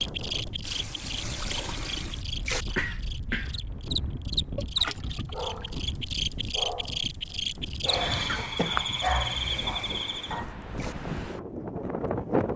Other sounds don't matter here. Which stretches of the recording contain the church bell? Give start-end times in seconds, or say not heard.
not heard.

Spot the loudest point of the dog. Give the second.
9 s.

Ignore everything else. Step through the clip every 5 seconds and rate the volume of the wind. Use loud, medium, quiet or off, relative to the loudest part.
medium, medium, loud.